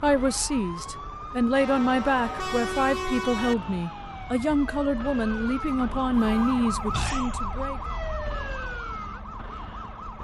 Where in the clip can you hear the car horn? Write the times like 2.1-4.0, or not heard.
1.6-3.5, 6.2-6.8.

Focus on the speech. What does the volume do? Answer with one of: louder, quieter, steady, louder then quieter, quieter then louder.
steady.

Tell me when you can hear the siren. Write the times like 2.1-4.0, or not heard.
0.0-10.1.